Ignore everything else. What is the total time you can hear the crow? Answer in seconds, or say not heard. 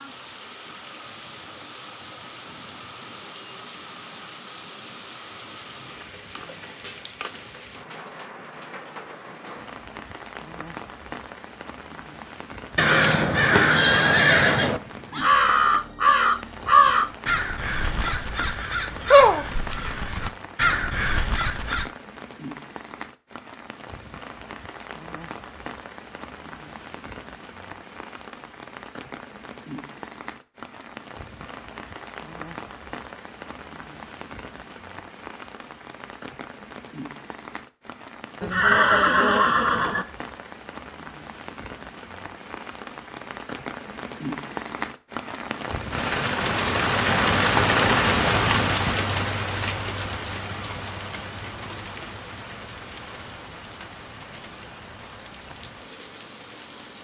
9 s.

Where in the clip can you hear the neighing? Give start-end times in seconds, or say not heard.
12.8-15.3, 38.4-40.0.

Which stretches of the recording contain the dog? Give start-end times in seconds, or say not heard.
not heard.